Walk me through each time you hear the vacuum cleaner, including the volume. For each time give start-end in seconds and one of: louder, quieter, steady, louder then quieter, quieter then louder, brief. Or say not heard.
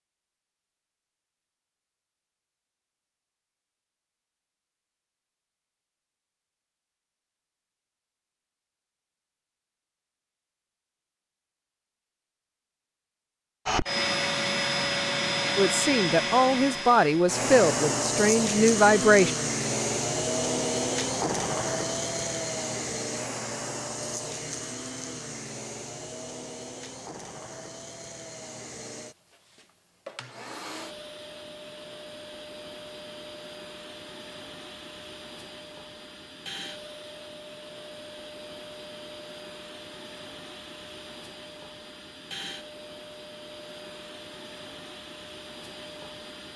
13.7-46.5 quieter.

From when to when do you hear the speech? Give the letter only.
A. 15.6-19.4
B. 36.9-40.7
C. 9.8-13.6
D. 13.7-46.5
A.